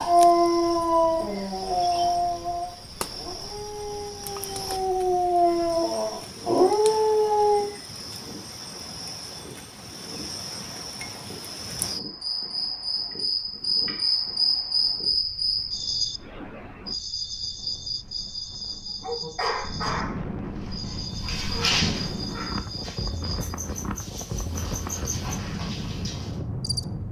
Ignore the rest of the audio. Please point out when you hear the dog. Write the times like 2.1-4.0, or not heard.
0.1-7.7, 18.9-26.4.